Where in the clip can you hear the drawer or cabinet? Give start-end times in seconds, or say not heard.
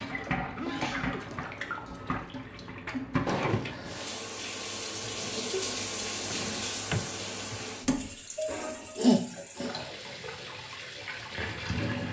3.2-4.2, 6.3-7.8.